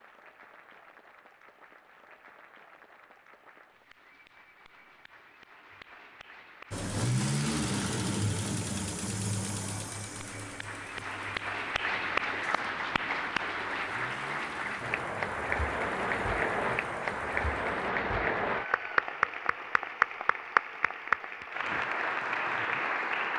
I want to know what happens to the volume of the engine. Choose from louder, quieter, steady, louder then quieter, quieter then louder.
quieter.